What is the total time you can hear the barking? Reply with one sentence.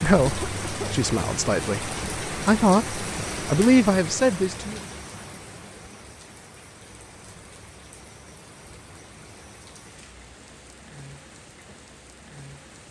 The barking can't be heard in this clip.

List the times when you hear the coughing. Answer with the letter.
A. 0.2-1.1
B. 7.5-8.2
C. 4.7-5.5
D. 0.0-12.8
A.